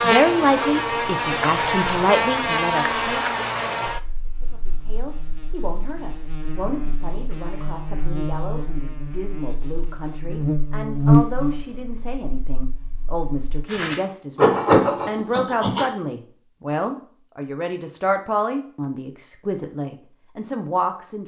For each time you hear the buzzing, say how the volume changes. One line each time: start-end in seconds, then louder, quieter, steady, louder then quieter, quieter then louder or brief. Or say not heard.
0.0-13.5 quieter then louder.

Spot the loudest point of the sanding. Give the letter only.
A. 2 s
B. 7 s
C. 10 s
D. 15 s
D.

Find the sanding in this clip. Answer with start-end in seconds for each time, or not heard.
13.7-15.8.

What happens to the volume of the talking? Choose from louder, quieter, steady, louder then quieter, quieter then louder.
quieter then louder.